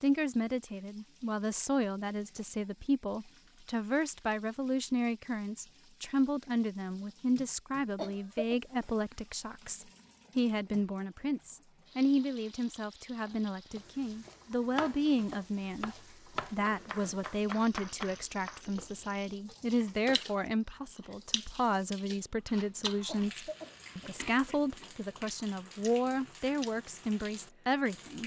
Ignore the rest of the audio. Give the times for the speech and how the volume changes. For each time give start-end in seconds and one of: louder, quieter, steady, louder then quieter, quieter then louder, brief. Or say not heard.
0.0-28.2 steady.